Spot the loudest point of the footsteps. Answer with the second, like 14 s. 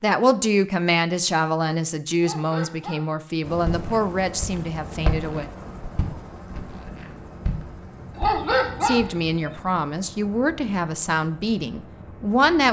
5 s.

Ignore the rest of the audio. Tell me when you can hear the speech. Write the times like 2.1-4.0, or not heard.
0.0-5.5, 8.8-12.6.